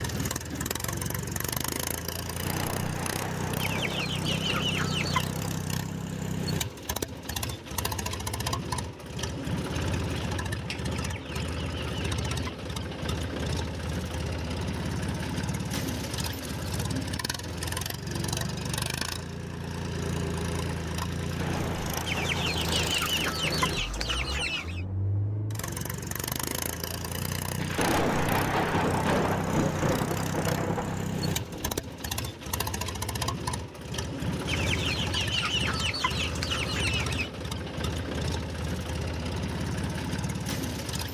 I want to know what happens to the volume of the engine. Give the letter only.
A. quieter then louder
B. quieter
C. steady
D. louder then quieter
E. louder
C.